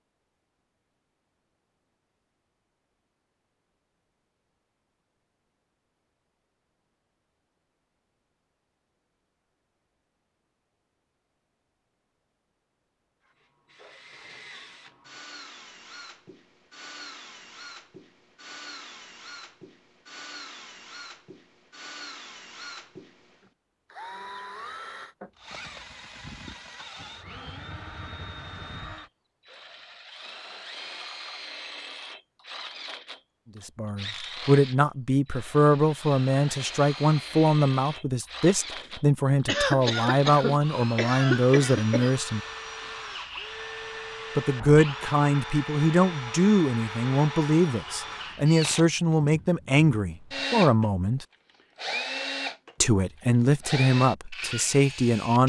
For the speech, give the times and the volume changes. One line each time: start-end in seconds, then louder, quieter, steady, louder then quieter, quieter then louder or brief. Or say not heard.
33.5-42.4 steady
44.4-51.2 steady
52.8-55.4 brief.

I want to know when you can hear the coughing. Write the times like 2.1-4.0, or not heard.
39.5-42.1.